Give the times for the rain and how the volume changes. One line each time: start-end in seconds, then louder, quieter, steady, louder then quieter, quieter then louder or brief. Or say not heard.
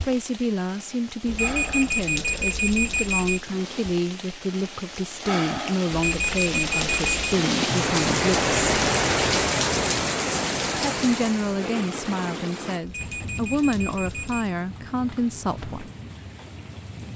0.0-17.1 louder then quieter.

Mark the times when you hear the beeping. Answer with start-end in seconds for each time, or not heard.
1.2-3.4, 5.9-7.3, 12.8-14.6.